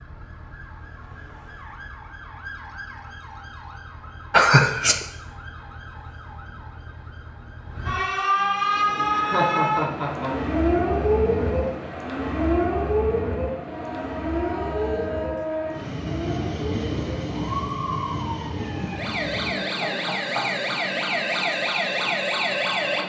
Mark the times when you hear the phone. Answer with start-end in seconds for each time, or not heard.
not heard.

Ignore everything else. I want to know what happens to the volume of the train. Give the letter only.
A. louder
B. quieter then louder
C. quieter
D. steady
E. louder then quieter
E.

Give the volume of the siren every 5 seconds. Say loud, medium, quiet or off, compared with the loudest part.
quiet, loud, loud, medium, loud.